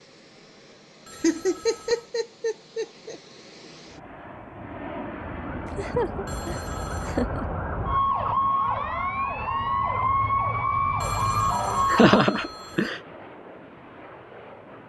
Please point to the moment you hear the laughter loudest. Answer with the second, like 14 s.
12 s.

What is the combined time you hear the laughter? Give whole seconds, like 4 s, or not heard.
5 s.